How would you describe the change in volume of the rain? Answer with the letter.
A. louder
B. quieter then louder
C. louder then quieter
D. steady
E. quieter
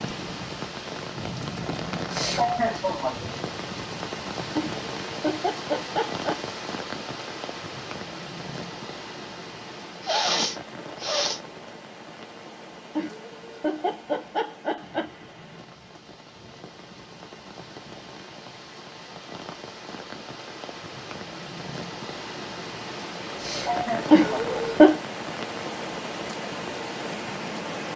B.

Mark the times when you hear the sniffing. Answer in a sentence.
The sniffing can be heard from 2.1 to 3.2 s, from 10.0 to 11.4 s and from 23.4 to 24.6 s.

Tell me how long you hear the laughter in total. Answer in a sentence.
The laughter can be heard for 5 seconds in total.